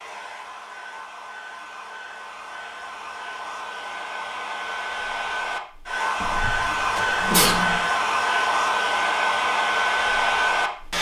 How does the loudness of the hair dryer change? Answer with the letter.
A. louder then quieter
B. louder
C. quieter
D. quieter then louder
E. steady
B.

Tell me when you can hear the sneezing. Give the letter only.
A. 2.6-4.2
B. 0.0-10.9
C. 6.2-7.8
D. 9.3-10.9
C.